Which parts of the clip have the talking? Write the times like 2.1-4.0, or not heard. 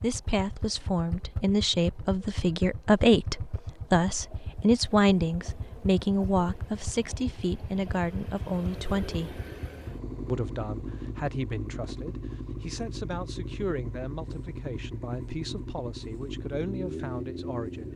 0.0-9.4, 10.2-17.9.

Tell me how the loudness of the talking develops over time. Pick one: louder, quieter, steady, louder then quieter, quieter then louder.
quieter.